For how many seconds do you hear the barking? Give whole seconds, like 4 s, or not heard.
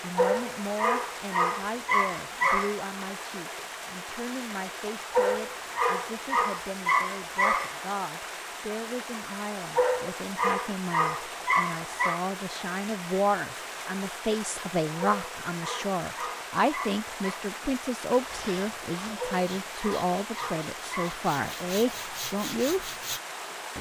12 s.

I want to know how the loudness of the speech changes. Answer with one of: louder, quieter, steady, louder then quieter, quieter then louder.
louder.